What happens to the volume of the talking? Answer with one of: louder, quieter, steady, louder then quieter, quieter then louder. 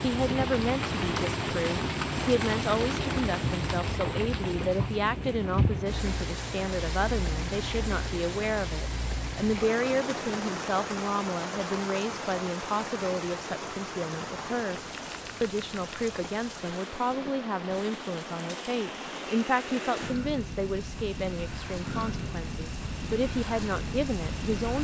steady.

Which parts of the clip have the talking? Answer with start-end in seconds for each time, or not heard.
0.0-14.8, 15.4-24.7.